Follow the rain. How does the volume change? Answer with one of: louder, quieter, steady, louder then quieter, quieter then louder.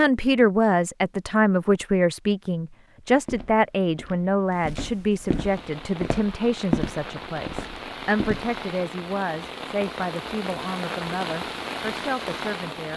louder.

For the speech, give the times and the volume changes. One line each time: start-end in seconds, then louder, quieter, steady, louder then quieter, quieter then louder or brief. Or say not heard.
0.0-12.9 quieter.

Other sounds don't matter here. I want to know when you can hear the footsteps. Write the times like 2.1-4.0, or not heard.
3.1-8.6.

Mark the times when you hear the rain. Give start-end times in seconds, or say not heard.
5.4-12.9.